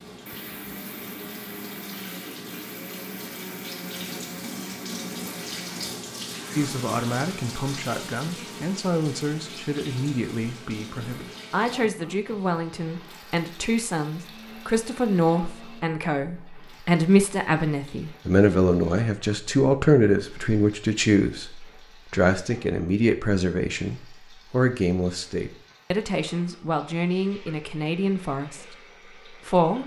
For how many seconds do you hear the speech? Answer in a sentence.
You can hear the speech for 23 seconds altogether.